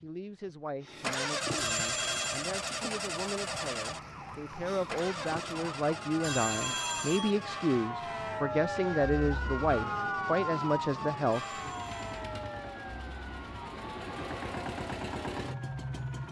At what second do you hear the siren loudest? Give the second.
10 s.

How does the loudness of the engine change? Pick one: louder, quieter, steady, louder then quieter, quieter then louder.
quieter then louder.